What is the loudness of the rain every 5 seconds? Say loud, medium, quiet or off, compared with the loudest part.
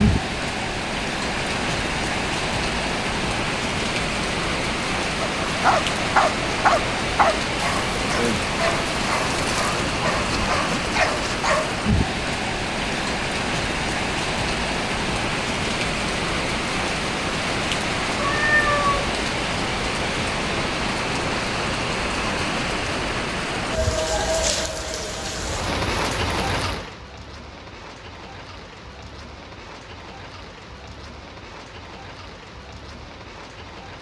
loud, loud, loud, loud, loud, medium, quiet.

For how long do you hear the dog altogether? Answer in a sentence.
You can hear the dog for 6 seconds altogether.